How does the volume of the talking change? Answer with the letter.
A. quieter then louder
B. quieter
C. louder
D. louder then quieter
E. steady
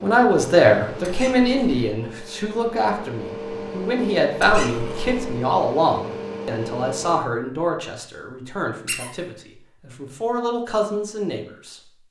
B.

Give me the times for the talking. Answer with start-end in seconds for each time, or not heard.
0.0-11.8.